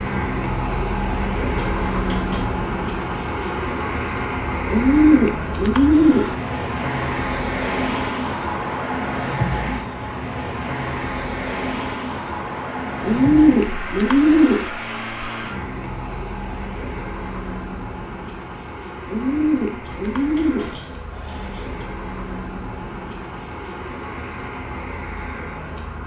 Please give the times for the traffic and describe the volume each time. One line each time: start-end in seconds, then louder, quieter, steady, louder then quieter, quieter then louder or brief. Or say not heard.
0.0-26.0 quieter.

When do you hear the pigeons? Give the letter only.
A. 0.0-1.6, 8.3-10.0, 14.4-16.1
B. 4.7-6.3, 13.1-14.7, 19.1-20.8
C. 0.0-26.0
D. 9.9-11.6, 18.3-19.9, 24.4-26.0
B.